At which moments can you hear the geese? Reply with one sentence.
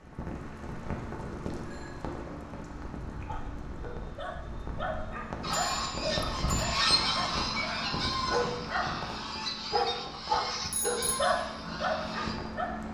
The geese can be heard from 5.4 to 12.4 s.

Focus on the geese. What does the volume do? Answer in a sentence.
The loudness of the geese goes down.